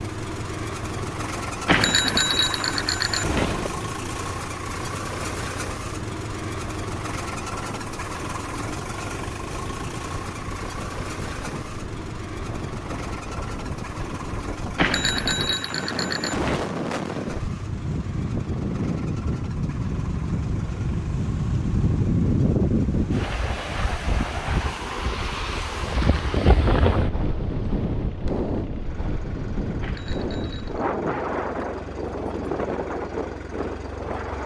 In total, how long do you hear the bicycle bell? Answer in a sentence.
The bicycle bell can be heard for 5 seconds in total.